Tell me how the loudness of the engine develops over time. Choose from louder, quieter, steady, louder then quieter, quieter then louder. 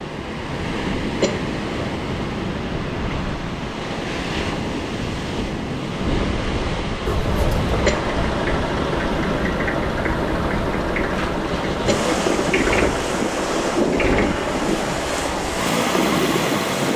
steady.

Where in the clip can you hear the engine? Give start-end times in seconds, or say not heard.
7.0-16.9.